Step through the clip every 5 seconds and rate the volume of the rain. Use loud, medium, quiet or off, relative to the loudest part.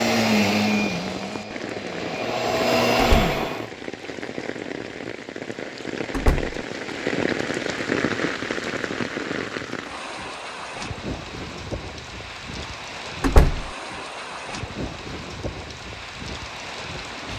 medium, loud, medium, medium.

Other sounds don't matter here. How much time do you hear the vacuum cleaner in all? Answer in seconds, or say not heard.
4 s.